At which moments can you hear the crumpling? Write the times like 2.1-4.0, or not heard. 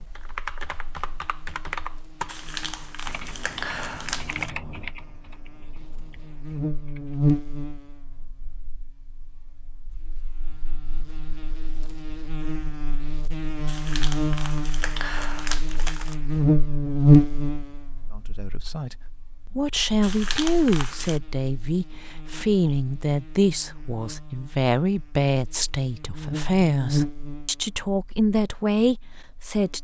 2.2-4.5, 13.7-16.1, 20.0-21.2.